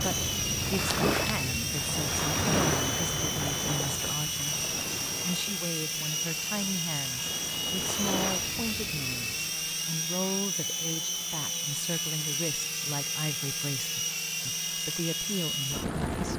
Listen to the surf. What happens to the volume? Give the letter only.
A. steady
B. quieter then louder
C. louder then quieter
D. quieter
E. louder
B.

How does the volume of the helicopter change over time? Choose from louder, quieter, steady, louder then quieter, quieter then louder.
steady.